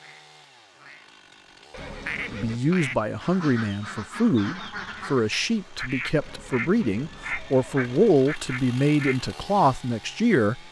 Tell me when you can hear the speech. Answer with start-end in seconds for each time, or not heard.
2.3-10.6.